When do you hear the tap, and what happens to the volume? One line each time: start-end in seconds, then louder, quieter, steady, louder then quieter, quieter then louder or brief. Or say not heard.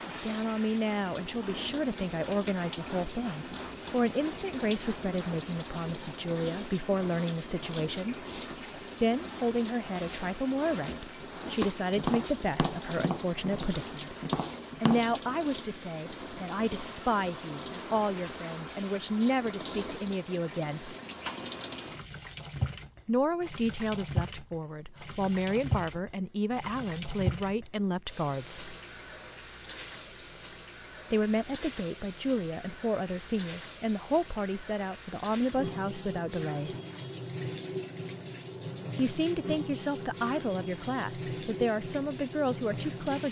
0.0-43.2 steady.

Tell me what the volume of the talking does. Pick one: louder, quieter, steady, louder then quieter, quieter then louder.
steady.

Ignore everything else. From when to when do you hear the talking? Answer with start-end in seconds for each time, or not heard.
0.1-8.2, 9.0-14.2, 14.8-20.9, 23.1-28.8, 31.1-36.8, 39.0-43.2.